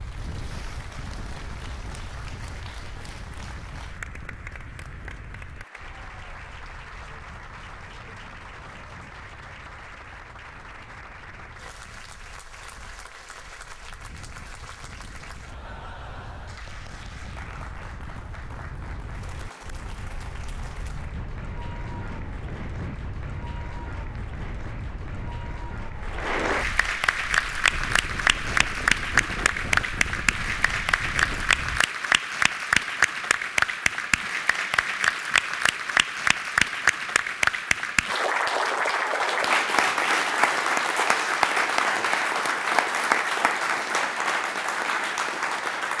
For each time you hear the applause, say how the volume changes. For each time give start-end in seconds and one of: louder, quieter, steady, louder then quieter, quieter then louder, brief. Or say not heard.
0.0-45.9 louder.